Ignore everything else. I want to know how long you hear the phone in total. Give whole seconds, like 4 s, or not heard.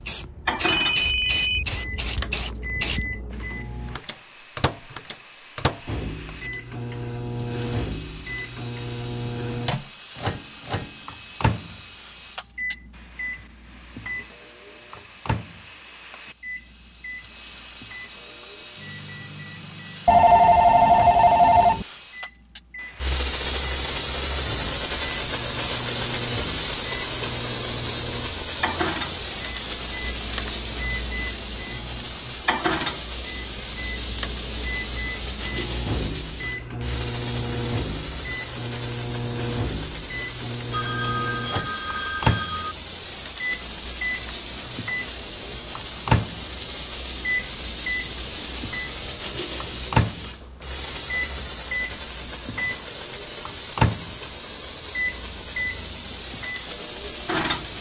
5 s.